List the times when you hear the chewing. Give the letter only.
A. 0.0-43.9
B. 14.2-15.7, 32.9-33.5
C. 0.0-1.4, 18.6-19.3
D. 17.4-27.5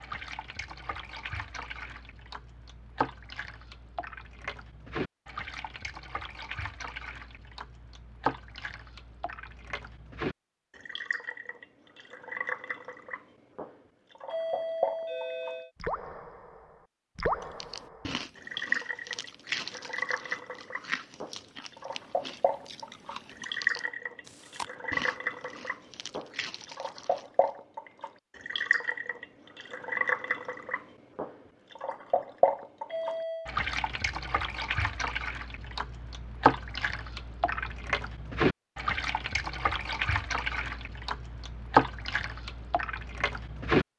D.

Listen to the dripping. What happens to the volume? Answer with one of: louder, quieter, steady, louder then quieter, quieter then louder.
louder.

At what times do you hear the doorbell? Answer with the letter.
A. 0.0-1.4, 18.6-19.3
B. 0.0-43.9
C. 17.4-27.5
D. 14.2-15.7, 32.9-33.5
D.